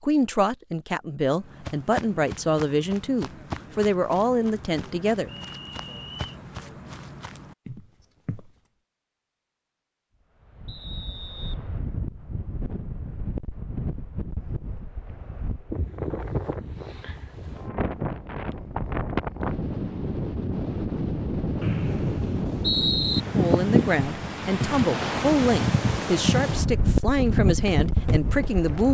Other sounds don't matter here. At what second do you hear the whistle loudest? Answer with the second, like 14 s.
23 s.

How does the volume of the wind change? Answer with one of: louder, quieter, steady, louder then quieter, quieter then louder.
louder.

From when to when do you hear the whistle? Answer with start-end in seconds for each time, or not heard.
5.2-6.3, 10.7-11.6, 21.6-23.2.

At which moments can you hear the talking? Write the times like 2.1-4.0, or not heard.
0.0-5.3, 23.4-28.8.